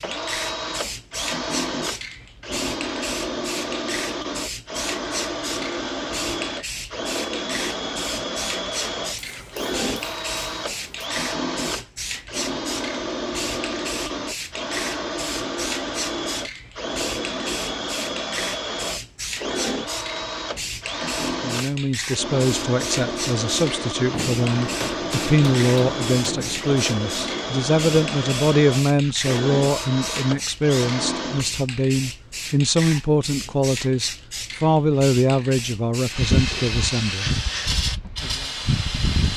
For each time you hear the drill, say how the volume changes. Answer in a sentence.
The drill can be heard from 0.0 to 31.4 s, at a steady volume.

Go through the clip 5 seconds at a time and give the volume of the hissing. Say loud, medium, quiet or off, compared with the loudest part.
medium, medium, medium, medium, medium, medium, medium, loud.